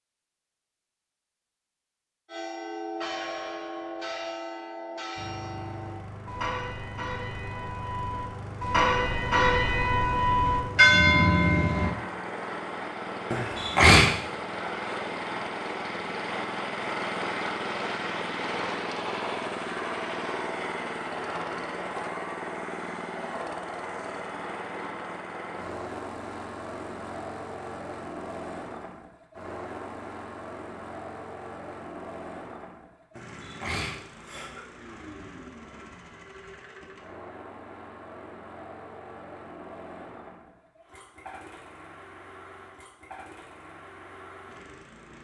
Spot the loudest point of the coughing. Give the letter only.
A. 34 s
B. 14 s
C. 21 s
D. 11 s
B.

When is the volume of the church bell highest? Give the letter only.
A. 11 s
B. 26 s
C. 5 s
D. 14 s
A.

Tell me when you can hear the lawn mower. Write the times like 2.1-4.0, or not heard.
5.2-45.2.